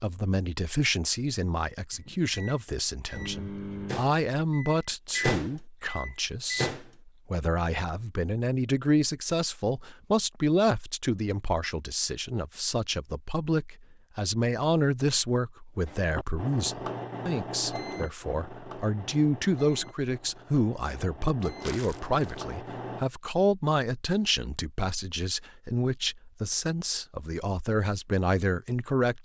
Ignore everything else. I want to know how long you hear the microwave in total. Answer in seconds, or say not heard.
12 s.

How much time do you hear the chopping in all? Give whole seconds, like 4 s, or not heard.
not heard.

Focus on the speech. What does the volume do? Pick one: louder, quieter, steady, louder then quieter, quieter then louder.
steady.